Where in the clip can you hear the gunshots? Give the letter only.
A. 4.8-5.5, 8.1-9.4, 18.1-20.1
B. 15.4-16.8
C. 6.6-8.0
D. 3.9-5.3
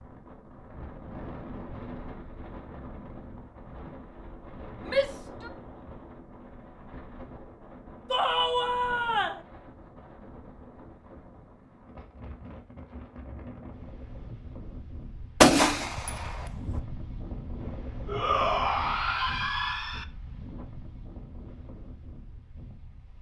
B.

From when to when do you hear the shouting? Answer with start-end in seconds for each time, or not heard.
4.8-5.5, 8.1-9.4, 18.1-20.1.